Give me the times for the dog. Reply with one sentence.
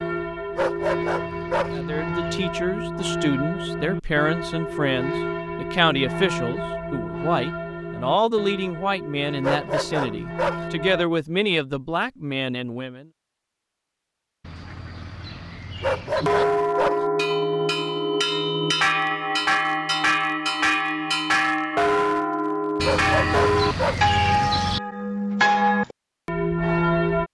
You can hear the dog from 0.6 to 1.8 s, from 9.4 to 10.7 s, from 15.8 to 17.1 s and from 22.8 to 24.1 s.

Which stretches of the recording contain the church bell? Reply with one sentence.
The church bell can be heard from 0.0 to 11.1 s and from 16.2 to 27.2 s.